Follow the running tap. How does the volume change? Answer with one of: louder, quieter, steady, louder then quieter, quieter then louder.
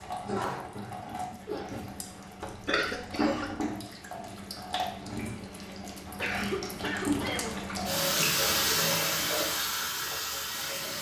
louder.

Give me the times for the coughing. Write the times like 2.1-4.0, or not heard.
2.4-3.5, 6.2-7.5.